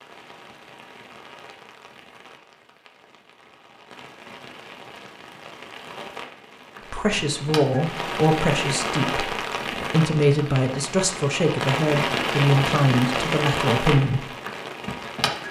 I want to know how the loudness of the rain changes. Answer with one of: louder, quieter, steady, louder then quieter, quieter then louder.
louder.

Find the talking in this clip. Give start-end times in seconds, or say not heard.
6.9-14.2.